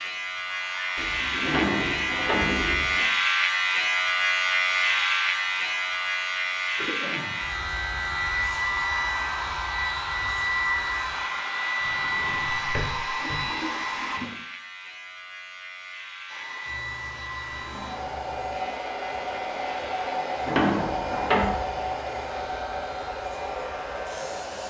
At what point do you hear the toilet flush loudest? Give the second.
2 s.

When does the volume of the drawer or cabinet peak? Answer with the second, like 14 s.
21 s.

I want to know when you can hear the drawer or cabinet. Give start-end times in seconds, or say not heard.
1.4-3.0, 11.8-13.4, 20.4-21.5.